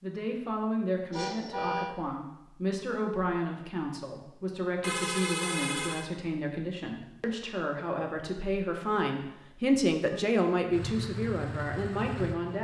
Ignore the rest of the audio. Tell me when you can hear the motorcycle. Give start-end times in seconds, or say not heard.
10.7-12.6.